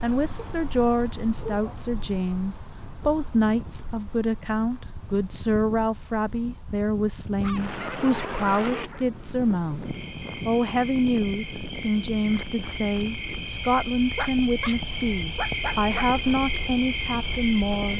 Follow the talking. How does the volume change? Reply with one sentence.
The loudness of the talking stays about the same.